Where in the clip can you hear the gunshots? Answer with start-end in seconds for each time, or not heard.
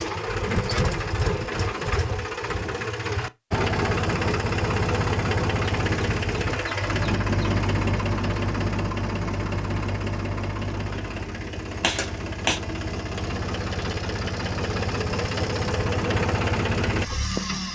11.8-12.6.